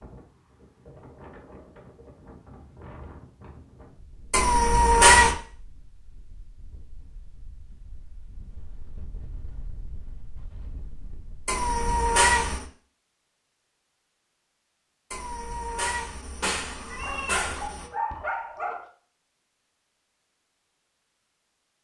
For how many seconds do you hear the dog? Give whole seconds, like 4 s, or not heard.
2 s.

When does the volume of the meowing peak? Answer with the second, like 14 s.
5 s.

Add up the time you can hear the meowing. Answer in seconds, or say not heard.
5 s.